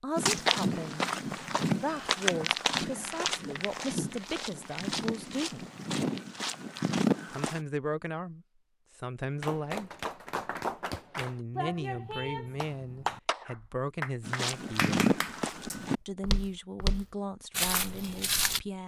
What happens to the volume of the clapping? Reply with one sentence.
The volume of the clapping stays about the same.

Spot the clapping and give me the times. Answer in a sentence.
The clapping can be heard from 9.4 to 16.1 s.